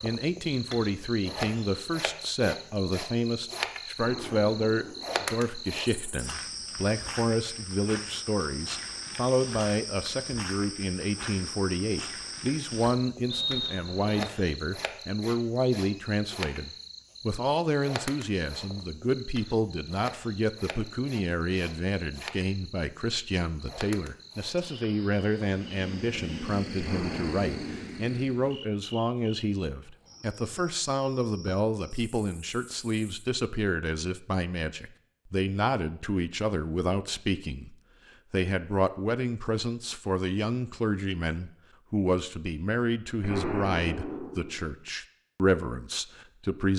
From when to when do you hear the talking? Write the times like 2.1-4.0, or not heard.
0.0-46.7.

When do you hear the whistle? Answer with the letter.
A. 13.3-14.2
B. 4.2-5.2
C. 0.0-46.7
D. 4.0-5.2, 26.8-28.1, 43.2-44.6
A.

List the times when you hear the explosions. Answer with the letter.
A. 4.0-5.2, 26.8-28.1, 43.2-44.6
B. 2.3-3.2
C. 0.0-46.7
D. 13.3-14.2
A.